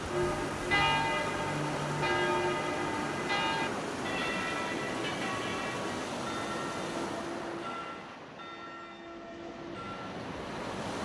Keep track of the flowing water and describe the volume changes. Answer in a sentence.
The volume of the flowing water goes down.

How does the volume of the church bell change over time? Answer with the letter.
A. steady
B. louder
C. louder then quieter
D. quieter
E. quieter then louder
D.